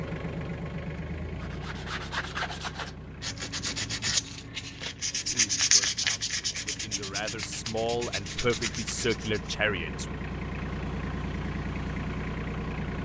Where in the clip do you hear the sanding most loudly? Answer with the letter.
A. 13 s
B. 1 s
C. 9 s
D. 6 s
D.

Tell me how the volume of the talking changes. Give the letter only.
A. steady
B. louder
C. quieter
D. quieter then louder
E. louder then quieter
B.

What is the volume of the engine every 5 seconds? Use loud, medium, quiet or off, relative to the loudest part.
medium, medium, loud.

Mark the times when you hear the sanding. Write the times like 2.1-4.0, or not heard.
1.4-9.5.